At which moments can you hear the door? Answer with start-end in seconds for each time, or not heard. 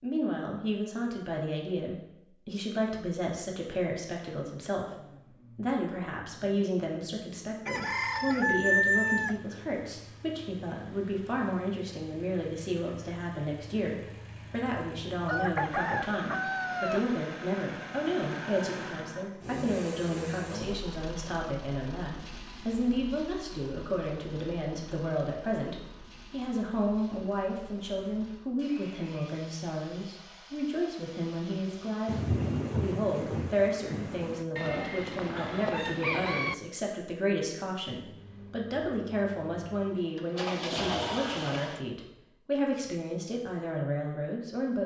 not heard.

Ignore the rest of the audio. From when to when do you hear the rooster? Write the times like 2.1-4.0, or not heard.
7.7-9.4, 15.2-17.1, 34.5-36.5.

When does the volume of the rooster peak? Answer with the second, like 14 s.
9 s.